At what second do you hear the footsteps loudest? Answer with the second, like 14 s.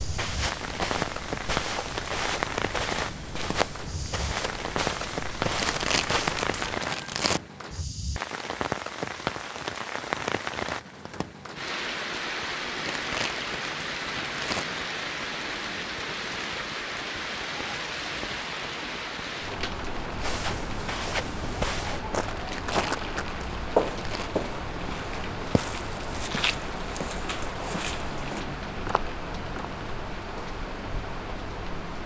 24 s.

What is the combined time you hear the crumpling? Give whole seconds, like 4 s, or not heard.
6 s.